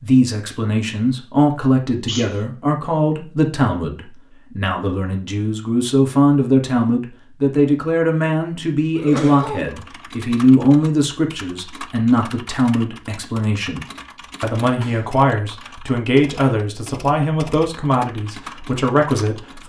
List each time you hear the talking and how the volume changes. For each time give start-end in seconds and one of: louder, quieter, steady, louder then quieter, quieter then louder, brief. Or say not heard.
0.0-19.6 steady.